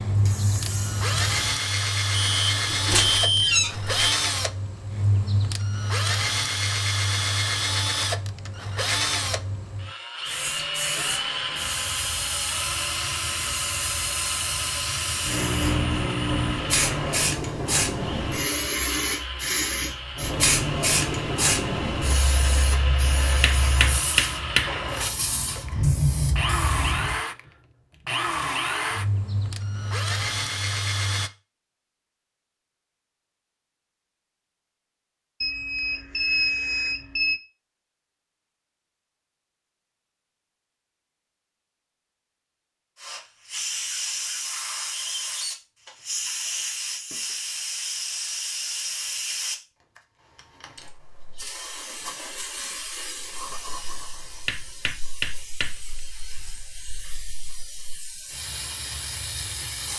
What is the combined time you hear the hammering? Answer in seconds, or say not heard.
3 s.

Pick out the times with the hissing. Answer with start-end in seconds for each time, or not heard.
0.0-1.6, 10.2-27.2, 43.0-59.9.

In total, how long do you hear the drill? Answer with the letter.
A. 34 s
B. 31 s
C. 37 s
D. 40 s
B.